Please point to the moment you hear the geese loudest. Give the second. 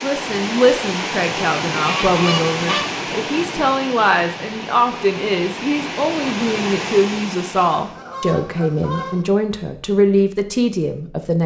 2 s.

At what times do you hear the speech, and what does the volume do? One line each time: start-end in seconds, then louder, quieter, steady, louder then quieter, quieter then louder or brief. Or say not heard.
0.0-11.4 steady.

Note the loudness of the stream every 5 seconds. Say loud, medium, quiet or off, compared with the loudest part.
loud, loud, off.